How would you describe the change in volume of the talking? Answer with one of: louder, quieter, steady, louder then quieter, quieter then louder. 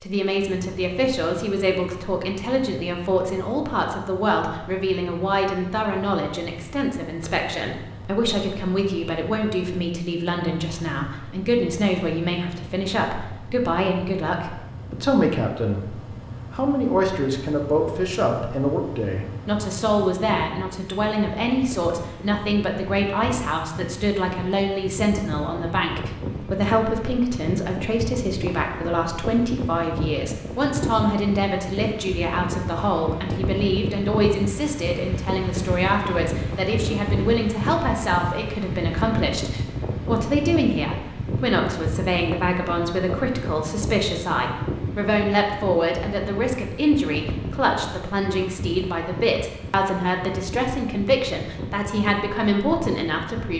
steady.